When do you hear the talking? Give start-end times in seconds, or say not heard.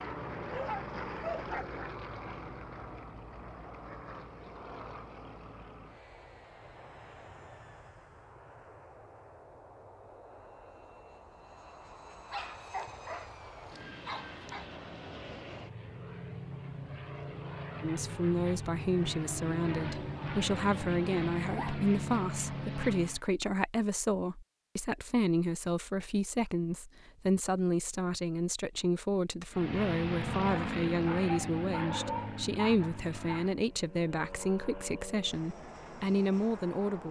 17.8-37.0.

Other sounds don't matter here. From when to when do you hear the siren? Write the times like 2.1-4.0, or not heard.
not heard.